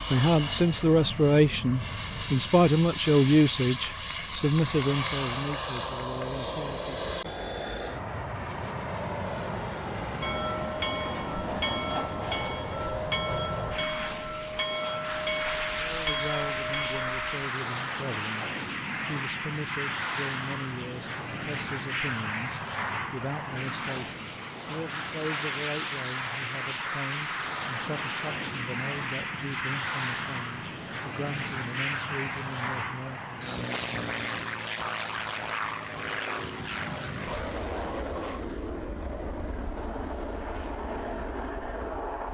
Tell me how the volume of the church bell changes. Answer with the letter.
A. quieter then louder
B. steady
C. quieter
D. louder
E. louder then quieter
B.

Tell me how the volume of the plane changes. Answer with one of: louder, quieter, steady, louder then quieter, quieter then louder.
steady.